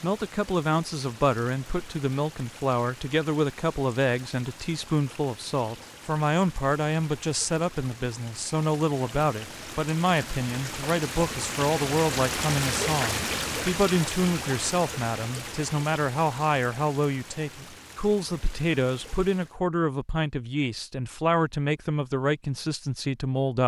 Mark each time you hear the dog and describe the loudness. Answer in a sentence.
The dog can't be heard in this clip.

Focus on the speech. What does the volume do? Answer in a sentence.
The volume of the speech stays about the same.